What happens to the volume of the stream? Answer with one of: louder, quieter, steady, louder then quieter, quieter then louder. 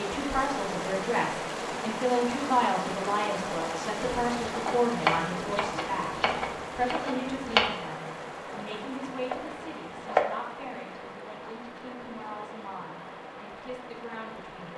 quieter.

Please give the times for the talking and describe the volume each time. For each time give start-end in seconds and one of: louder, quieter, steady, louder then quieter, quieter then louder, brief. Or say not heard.
0.0-14.7 quieter.